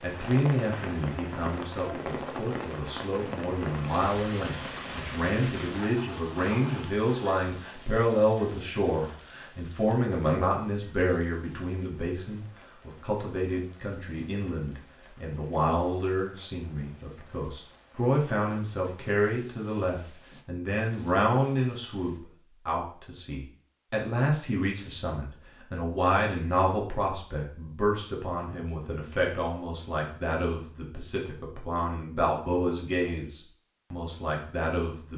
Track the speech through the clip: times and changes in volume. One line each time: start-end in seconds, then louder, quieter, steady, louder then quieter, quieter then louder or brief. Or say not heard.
0.0-35.1 steady.